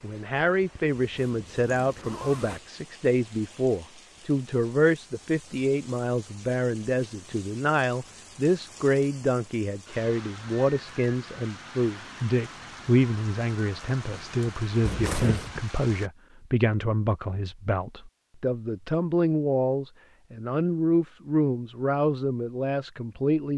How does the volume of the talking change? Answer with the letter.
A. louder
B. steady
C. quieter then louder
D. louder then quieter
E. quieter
B.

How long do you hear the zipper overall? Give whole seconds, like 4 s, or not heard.
2 s.